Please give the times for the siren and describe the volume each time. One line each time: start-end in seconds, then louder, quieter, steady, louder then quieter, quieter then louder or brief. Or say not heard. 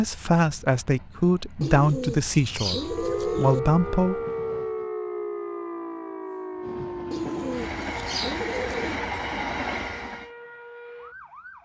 2.7-11.6 quieter.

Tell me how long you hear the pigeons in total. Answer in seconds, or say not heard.
4 s.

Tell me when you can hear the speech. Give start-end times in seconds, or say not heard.
0.0-4.2.